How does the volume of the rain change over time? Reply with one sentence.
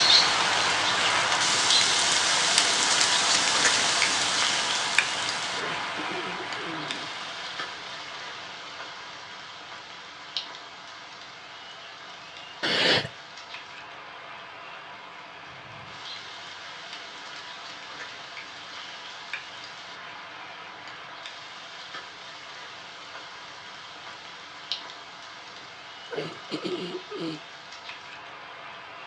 The volume of the rain goes down.